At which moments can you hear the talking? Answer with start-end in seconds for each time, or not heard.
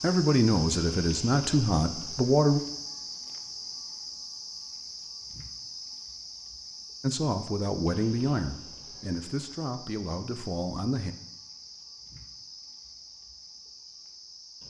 0.0-2.6, 7.0-11.1.